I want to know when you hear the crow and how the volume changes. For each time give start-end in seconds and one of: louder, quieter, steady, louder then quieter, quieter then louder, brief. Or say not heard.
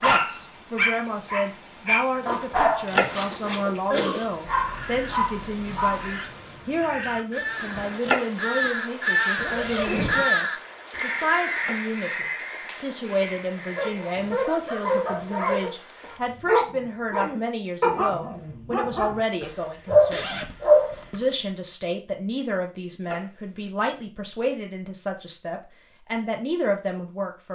4.4-14.2 louder then quieter.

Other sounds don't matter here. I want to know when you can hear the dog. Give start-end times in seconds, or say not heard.
0.0-6.2, 13.8-20.9.